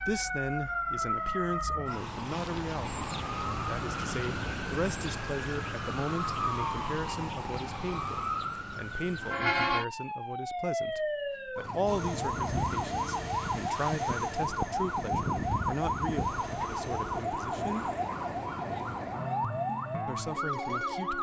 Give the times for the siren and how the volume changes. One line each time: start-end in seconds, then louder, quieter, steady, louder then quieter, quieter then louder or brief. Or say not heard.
0.0-21.1 steady.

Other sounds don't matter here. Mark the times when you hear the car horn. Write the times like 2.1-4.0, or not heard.
not heard.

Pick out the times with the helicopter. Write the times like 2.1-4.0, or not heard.
11.8-17.2.